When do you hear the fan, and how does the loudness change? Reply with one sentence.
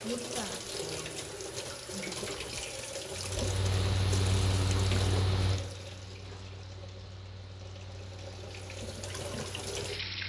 You can hear the fan from 3.1 to 10.2 s, getting quieter.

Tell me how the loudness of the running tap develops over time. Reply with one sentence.
The loudness of the running tap goes down, then up.